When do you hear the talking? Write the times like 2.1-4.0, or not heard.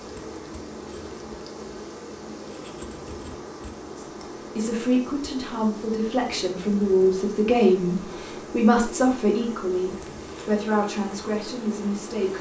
4.0-12.3.